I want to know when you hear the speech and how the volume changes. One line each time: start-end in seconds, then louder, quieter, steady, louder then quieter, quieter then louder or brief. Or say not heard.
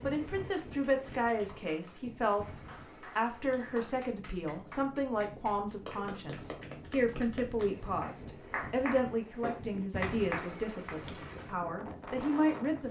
0.0-12.8 steady.